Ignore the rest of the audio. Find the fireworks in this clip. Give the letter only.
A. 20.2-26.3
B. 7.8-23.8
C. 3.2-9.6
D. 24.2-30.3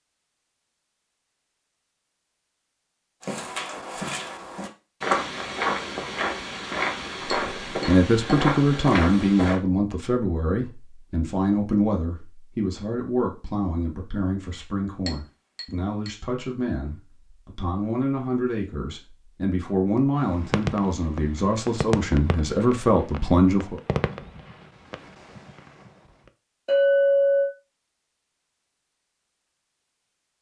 A.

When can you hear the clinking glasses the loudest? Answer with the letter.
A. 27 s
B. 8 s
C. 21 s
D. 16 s
A.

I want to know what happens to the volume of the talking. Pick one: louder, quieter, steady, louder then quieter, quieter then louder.
quieter then louder.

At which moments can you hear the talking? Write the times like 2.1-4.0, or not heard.
7.8-23.8.